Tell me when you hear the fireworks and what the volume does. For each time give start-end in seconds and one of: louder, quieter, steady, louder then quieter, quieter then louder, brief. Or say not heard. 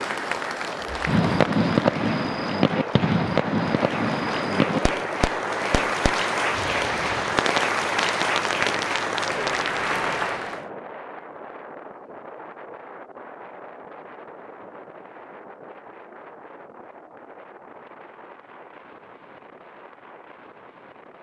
1.1-9.8 quieter.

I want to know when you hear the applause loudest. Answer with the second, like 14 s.
8 s.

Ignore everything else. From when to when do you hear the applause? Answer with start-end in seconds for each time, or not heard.
0.0-10.7.